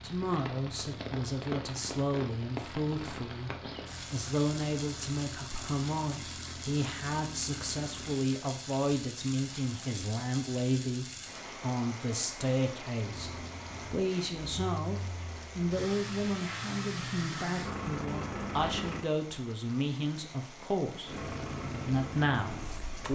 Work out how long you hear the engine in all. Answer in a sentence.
You can hear the engine for 16 seconds altogether.